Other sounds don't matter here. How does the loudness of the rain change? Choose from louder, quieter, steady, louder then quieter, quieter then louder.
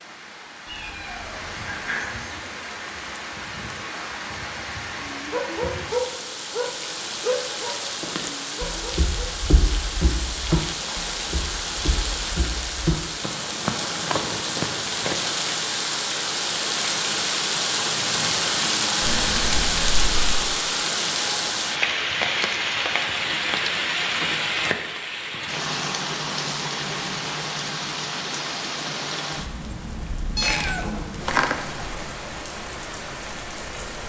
louder then quieter.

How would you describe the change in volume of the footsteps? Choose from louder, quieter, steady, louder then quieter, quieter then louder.
quieter then louder.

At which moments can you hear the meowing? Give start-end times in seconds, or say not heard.
0.7-2.1, 19.0-20.4, 30.4-31.6.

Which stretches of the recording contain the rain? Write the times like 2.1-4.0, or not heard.
0.0-34.0.